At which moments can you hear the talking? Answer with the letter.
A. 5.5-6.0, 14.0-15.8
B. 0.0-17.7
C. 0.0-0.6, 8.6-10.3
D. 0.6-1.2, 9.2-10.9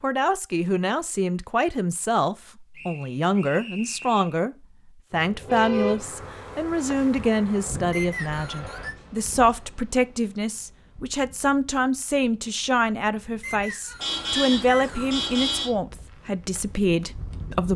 B.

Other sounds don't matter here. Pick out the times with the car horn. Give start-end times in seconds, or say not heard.
5.5-6.0, 14.0-15.8.